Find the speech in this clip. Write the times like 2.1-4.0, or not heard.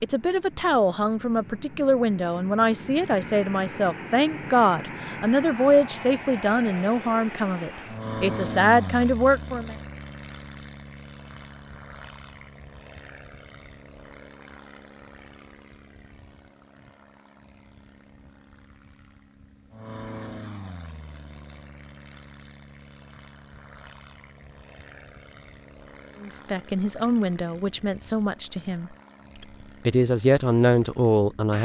0.0-9.8, 26.2-31.5.